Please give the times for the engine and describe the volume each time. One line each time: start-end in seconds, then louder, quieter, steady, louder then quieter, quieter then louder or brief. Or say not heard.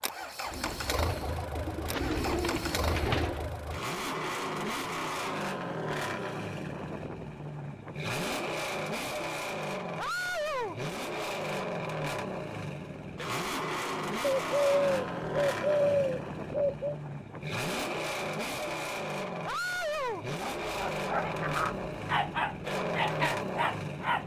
0.0-24.2 steady.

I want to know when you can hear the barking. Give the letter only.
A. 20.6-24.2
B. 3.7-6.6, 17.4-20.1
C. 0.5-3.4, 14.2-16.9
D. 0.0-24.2
A.